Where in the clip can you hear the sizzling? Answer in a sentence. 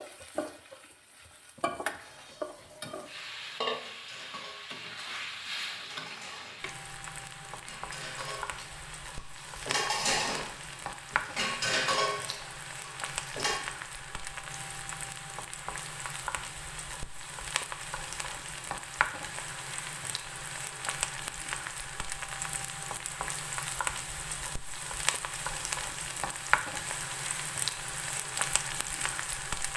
The sizzling can be heard from 0.0 to 29.7 s.